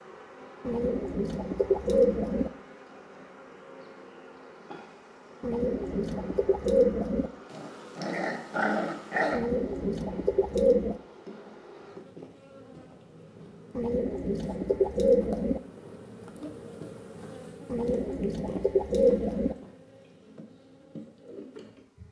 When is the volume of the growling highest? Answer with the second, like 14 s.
9 s.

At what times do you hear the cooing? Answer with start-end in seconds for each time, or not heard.
0.7-2.5, 5.4-7.3, 9.3-11.0, 13.8-15.6, 17.6-19.6.